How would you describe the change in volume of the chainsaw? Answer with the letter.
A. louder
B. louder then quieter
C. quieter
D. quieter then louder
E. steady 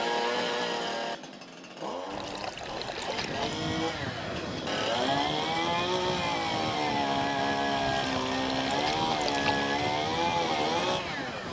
A.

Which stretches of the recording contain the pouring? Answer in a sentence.
The pouring can be heard from 2.1 to 3.6 s and from 8.0 to 9.7 s.